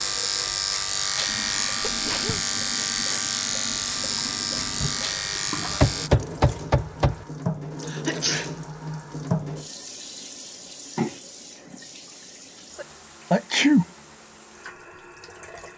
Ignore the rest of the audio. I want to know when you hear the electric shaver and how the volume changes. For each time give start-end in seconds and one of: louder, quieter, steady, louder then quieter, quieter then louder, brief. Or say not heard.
0.0-6.1 steady.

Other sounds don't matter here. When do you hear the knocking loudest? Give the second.
6 s.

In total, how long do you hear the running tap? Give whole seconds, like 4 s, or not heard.
16 s.